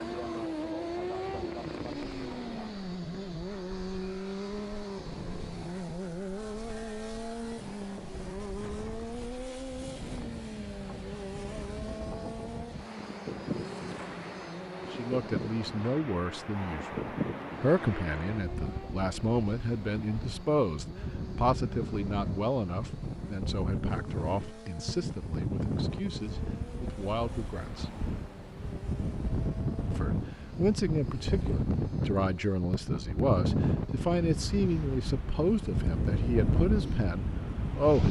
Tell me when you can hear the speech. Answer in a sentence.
You can hear the speech from 14.9 to 27.9 s and from 29.9 to 38.0 s.